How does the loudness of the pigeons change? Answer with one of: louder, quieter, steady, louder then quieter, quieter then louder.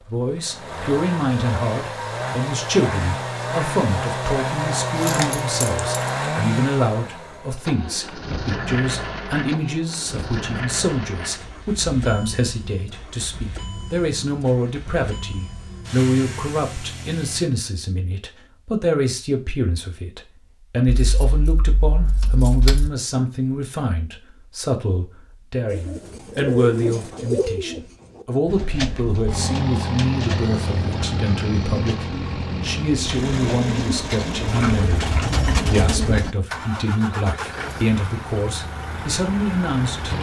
quieter then louder.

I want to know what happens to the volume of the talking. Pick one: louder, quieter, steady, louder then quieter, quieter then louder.
steady.